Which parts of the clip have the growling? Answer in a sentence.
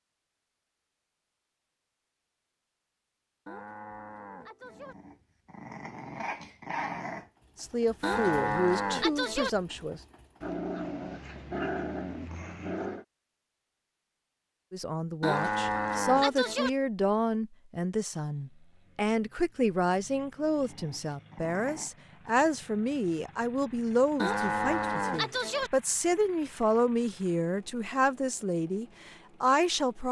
The growling can be heard from 4.7 to 7.3 s, from 10.4 to 13.1 s and from 20.5 to 21.9 s.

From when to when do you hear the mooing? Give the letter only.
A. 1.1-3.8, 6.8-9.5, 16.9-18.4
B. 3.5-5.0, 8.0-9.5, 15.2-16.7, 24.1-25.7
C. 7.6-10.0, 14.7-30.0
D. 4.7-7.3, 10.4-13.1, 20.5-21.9
B.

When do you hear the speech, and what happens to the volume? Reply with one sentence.
You can hear the speech briefly from 7.6 to 10.0 s; and from 14.7 to 30.0 s, at a steady volume.